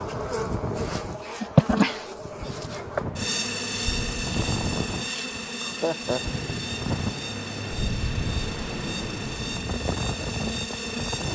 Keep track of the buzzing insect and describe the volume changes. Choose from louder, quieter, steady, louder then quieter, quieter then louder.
quieter.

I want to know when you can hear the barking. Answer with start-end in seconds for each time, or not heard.
not heard.